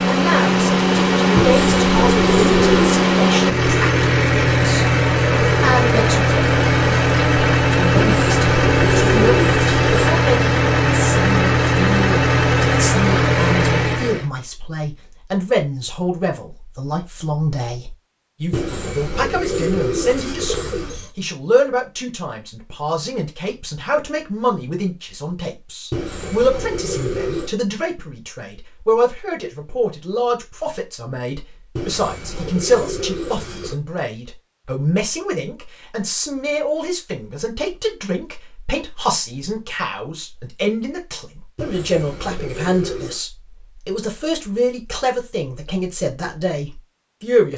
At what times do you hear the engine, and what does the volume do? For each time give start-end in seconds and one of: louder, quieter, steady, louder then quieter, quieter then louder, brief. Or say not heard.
0.0-14.3 steady.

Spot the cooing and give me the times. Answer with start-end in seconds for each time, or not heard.
1.4-3.0, 8.0-10.1, 18.5-21.1, 25.9-27.5, 31.8-33.8, 41.5-43.2.